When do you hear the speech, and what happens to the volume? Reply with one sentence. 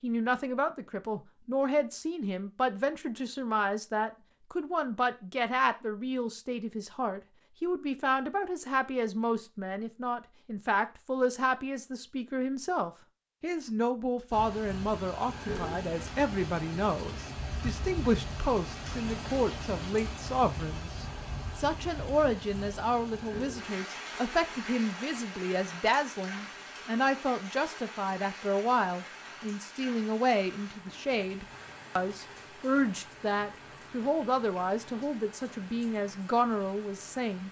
You can hear the speech from 0.0 to 37.4 s, at a steady volume.